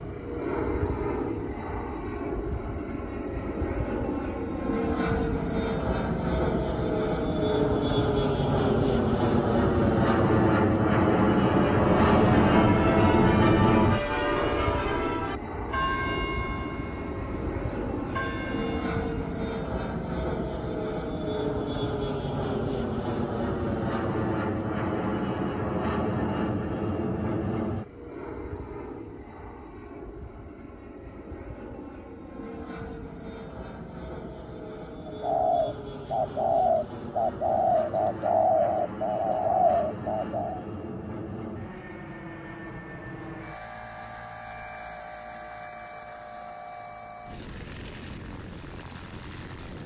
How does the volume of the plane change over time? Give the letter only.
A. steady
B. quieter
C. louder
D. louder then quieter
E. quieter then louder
B.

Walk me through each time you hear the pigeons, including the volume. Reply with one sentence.
You can hear the pigeons from 35.0 to 40.6 s, at a steady volume.